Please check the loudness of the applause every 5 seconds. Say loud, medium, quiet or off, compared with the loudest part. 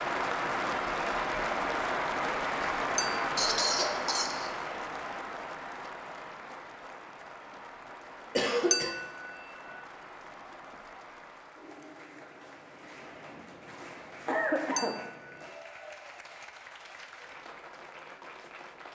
loud, quiet, quiet, quiet.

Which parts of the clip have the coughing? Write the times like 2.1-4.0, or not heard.
3.4-4.5, 8.3-8.9, 14.2-15.0.